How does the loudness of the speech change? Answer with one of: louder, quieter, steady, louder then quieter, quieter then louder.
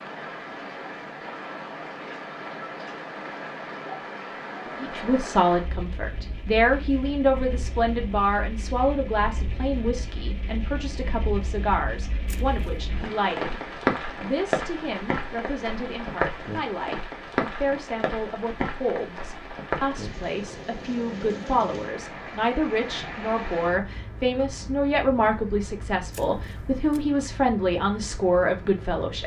quieter then louder.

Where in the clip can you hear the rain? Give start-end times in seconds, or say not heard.
0.0-29.2.